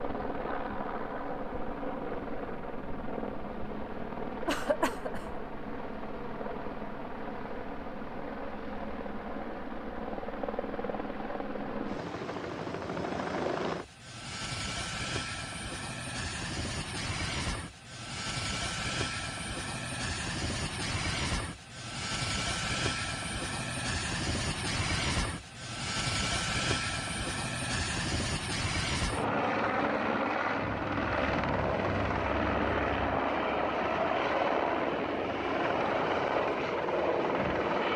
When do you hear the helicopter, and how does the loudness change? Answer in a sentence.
The helicopter can be heard from 0.0 to 37.9 s, getting louder.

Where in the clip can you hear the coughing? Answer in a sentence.
You can hear the coughing from 4.5 to 5.4 s.